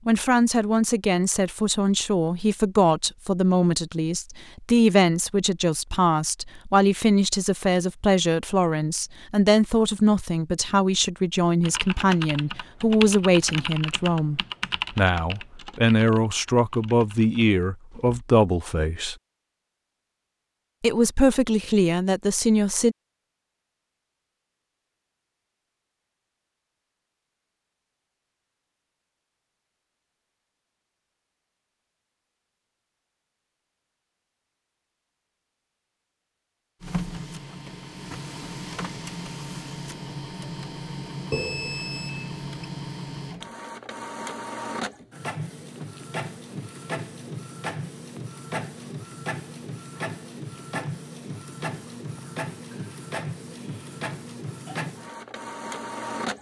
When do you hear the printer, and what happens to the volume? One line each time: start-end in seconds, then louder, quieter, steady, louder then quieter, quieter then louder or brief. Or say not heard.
36.8-56.3 steady.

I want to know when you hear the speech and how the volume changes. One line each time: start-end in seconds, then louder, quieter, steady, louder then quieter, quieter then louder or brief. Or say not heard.
0.1-19.1 steady
20.8-22.9 brief.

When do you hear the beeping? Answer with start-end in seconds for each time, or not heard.
41.3-42.5.